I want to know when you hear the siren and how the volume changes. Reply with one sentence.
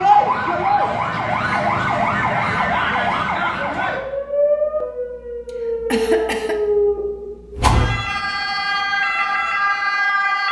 The siren can be heard from 0.0 to 10.4 s, at a steady volume.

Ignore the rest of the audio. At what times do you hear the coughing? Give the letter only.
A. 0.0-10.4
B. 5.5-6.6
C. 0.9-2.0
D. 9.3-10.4
B.